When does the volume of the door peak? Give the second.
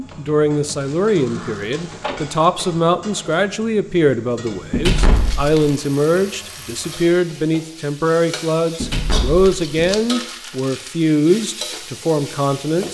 5 s.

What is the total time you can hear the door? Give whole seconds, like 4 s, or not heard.
4 s.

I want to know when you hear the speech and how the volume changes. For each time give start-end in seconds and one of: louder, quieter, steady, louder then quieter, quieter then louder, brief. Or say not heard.
0.0-12.8 steady.